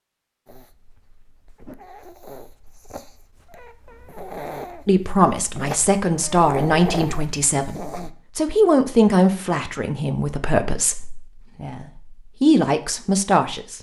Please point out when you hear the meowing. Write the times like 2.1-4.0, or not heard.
not heard.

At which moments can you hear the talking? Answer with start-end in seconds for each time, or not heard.
4.8-13.7.